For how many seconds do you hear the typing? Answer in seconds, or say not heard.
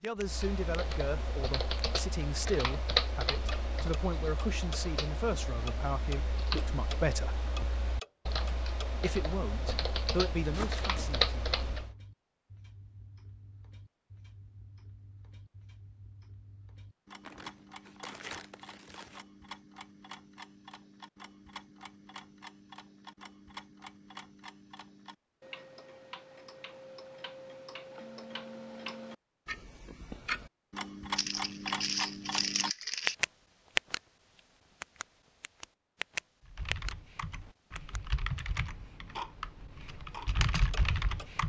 17 s.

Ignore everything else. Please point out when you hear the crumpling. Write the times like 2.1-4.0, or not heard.
10.5-11.2, 17.2-19.2, 31.1-33.1.